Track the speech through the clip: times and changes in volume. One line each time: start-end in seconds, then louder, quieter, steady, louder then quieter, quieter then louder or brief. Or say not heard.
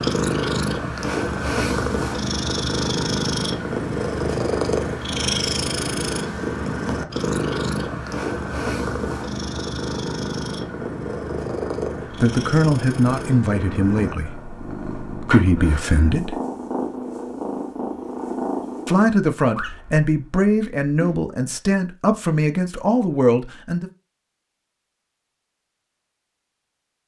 12.2-16.4 quieter then louder
18.9-23.9 steady.